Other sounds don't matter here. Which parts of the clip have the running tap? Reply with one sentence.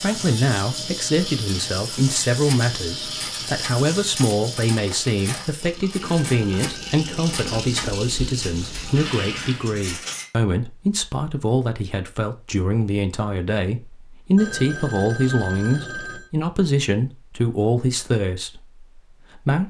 The running tap can be heard from 0.0 to 9.8 s.